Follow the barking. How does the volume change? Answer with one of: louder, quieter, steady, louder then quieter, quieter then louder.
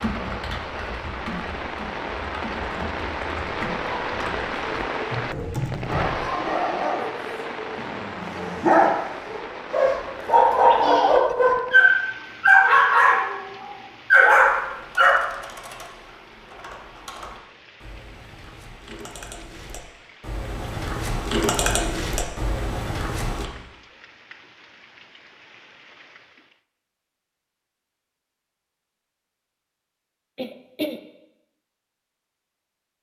louder.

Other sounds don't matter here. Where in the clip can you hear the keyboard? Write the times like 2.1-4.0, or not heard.
0.0-6.2, 14.3-23.4.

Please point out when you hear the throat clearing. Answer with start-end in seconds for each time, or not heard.
10.5-11.3, 30.4-31.0.